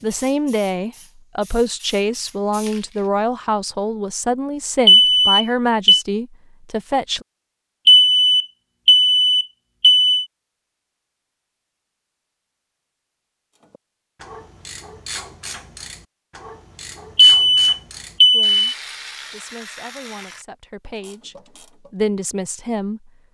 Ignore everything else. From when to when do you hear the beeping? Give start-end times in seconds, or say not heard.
4.8-6.0, 7.8-10.2, 17.1-18.6.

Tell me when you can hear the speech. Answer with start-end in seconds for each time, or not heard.
0.0-7.2, 18.3-23.1.